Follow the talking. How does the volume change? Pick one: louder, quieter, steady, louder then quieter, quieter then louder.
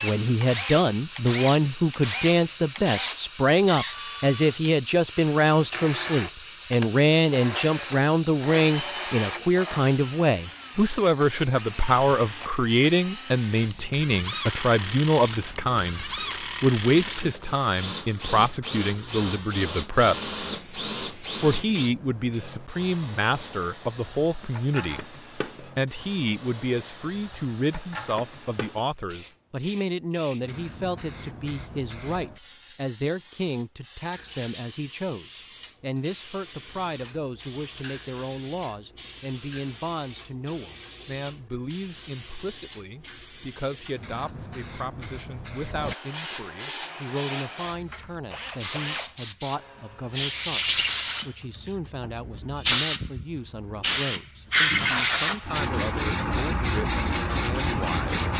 quieter.